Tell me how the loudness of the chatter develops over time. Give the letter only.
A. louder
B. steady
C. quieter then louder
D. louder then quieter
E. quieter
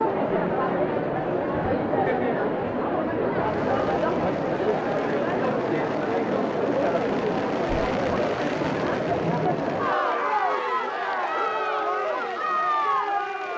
B.